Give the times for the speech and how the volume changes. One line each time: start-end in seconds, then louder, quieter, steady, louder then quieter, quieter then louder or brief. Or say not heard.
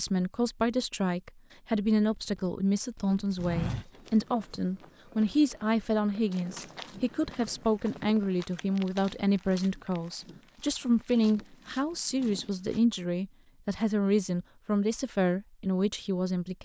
0.0-16.5 steady.